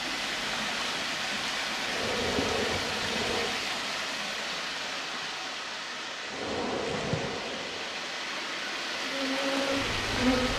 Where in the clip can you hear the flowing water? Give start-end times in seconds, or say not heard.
0.0-10.5.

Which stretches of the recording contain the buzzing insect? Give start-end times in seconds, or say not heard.
1.9-3.6, 6.2-10.5.